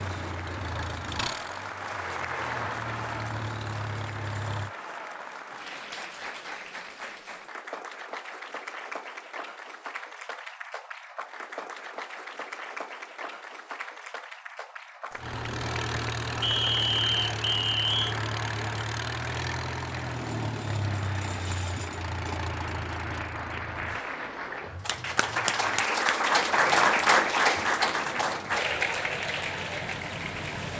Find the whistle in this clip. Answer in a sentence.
You can hear the whistle from 16.4 to 18.1 s.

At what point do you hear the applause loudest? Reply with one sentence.
The loudest moment of the applause is at 27 seconds.